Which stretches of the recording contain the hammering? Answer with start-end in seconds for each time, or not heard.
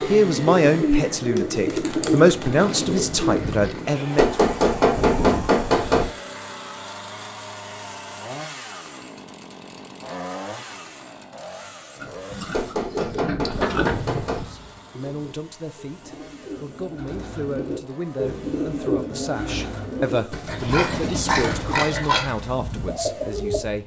4.2-6.0, 12.5-14.4.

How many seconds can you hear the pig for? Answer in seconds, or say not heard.
6 s.